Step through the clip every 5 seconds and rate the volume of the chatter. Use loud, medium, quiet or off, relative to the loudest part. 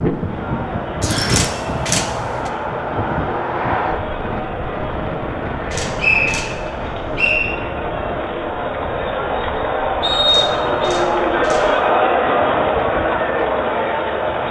medium, medium, loud.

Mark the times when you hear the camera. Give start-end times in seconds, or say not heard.
1.2-2.5, 5.7-6.5, 10.2-11.7.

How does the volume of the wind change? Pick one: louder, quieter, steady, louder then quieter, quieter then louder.
quieter.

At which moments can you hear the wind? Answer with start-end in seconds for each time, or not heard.
0.0-14.4.